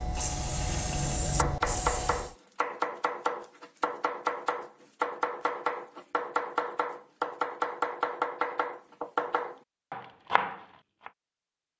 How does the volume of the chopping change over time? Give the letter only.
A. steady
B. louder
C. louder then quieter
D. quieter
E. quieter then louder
A.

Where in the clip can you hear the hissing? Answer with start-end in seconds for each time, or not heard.
0.0-2.4.